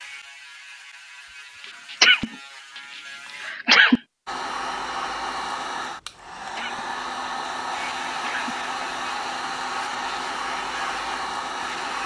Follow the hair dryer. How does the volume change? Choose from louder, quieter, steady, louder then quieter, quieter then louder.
steady.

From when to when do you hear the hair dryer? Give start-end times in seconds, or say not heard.
4.2-12.0.